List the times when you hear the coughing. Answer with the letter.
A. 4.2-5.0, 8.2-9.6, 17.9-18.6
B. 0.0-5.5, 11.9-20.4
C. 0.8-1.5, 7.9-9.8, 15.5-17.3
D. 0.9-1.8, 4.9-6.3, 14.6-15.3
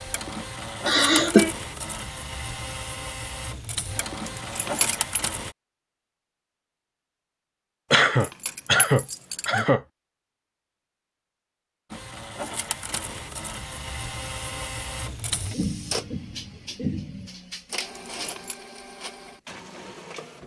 C.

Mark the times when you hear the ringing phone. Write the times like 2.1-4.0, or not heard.
not heard.